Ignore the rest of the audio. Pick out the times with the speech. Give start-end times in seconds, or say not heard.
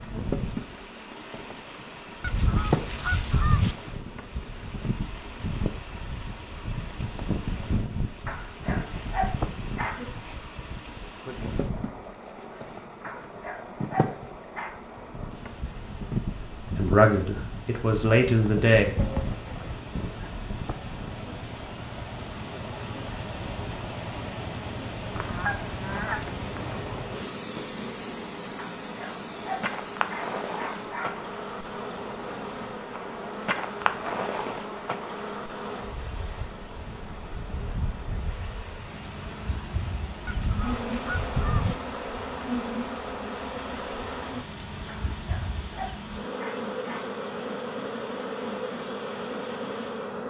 16.6-18.9.